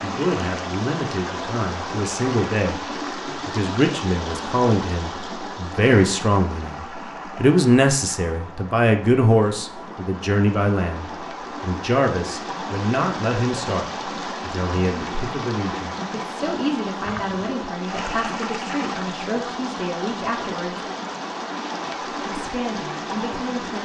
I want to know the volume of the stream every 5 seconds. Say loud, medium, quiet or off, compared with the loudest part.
loud, medium, loud, loud, loud.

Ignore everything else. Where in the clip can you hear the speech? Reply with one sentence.
You can hear the speech from 0.0 to 2.8 s, from 3.5 to 20.9 s and from 22.1 to 23.8 s.